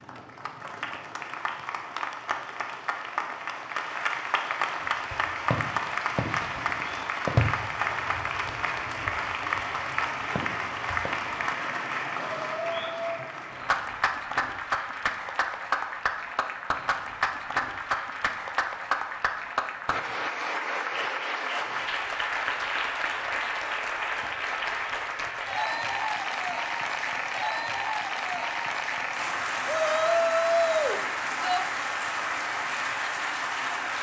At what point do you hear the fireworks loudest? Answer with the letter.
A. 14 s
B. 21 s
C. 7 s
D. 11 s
C.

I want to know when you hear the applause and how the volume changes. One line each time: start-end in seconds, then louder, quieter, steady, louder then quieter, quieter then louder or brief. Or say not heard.
0.0-33.9 steady.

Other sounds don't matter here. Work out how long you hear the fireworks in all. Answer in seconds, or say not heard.
7 s.